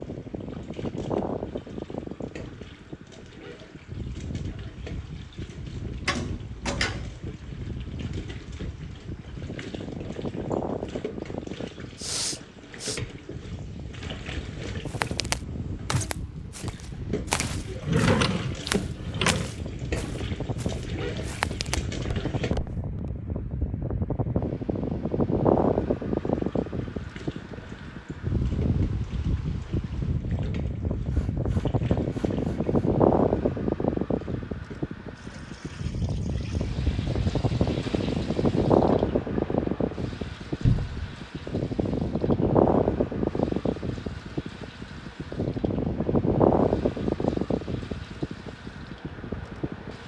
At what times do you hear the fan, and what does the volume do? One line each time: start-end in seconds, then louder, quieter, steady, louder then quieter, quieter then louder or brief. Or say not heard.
0.0-50.0 louder.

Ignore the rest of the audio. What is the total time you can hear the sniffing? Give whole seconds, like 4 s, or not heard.
3 s.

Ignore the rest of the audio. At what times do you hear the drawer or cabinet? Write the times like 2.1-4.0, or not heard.
6.0-7.2, 17.8-19.5, 40.6-41.1.